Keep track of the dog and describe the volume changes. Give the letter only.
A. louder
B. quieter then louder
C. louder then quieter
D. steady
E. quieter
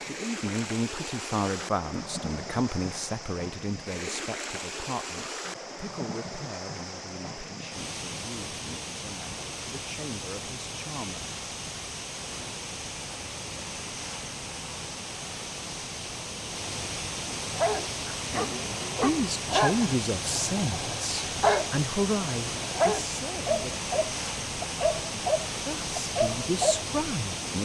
D.